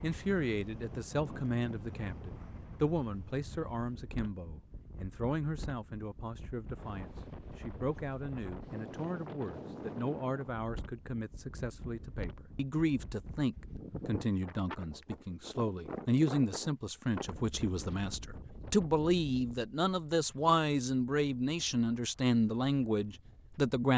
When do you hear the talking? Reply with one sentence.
The talking can be heard from 0.0 to 23.9 s.